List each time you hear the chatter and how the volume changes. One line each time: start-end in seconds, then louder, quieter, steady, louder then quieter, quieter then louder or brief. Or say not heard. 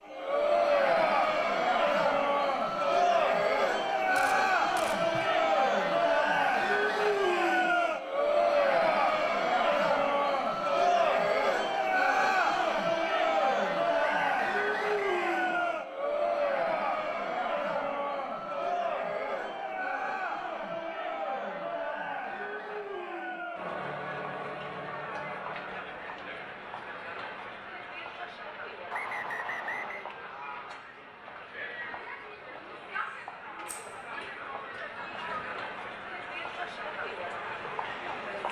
0.1-38.4 quieter.